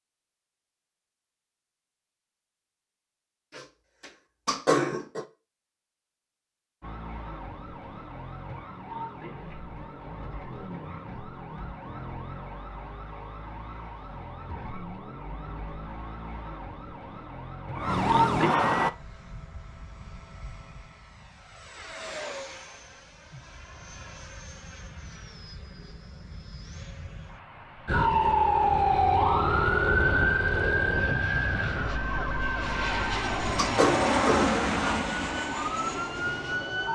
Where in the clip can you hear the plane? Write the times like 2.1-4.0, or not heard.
18.8-36.9.